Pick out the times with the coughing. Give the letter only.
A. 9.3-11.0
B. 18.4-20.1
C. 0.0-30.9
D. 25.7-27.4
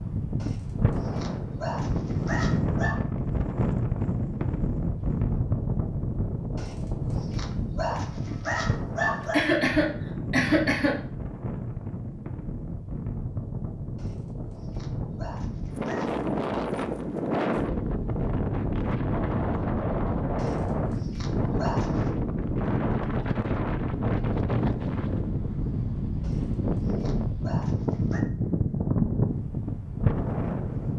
A.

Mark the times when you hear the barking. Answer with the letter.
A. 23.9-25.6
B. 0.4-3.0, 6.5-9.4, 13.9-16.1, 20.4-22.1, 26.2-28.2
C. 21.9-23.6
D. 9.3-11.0
B.